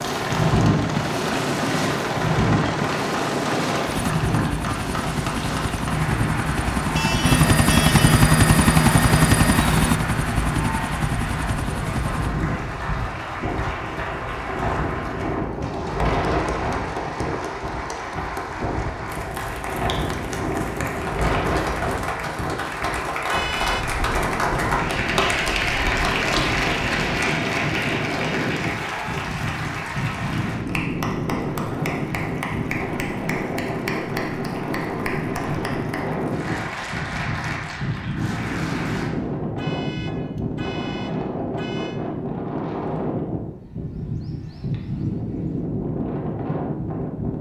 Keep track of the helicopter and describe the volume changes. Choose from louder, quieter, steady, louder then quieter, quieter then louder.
louder then quieter.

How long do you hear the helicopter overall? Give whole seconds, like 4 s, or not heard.
12 s.